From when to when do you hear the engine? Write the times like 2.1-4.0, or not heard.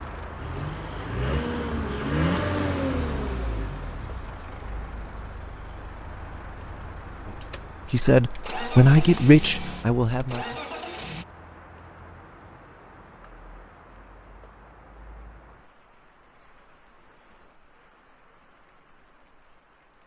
0.0-11.2.